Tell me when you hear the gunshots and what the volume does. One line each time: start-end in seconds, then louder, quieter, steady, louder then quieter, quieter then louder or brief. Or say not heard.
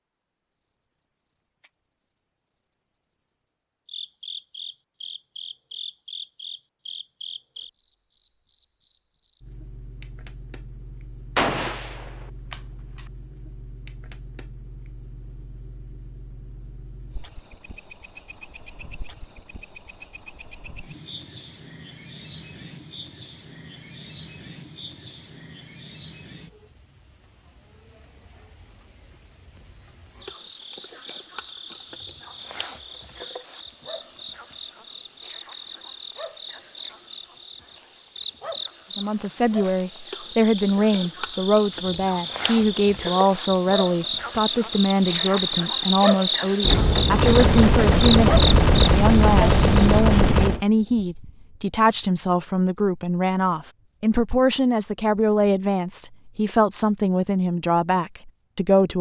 11.3-13.0 brief
46.6-50.6 steady.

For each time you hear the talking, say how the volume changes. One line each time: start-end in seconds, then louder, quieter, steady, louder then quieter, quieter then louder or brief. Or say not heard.
39.0-58.9 steady.